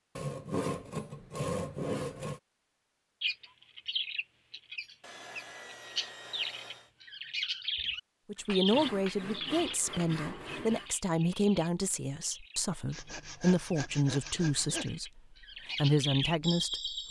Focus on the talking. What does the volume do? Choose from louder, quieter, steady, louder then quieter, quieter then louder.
quieter then louder.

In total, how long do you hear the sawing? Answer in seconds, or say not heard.
8 s.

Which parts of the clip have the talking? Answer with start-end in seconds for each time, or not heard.
8.2-17.0.